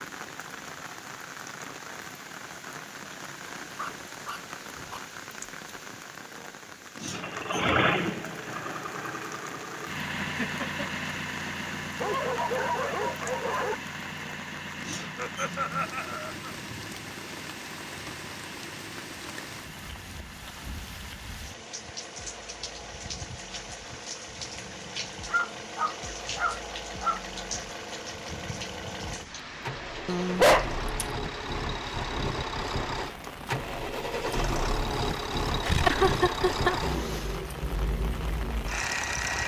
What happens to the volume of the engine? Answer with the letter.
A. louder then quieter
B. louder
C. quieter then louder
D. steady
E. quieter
C.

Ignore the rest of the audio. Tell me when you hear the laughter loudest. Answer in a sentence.
The volume of the laughter peaks at 36 seconds.